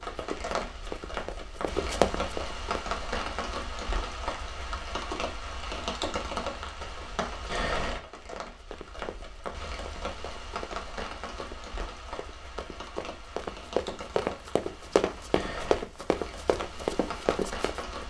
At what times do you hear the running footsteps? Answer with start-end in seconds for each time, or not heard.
0.0-3.0, 8.2-18.0.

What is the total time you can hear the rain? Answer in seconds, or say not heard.
18 s.